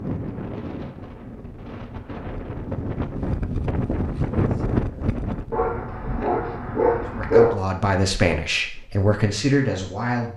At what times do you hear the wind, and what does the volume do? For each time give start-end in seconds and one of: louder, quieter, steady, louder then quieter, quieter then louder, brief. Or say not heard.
0.0-5.7 louder.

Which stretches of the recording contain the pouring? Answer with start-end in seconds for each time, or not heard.
not heard.